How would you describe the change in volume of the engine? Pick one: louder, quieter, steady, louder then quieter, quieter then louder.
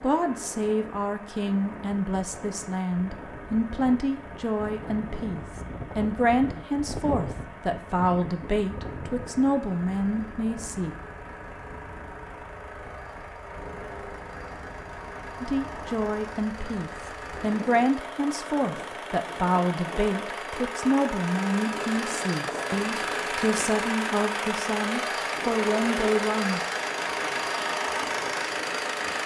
louder.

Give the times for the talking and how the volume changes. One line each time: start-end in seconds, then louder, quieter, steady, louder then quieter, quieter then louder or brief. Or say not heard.
0.0-10.9 steady
15.4-26.6 steady.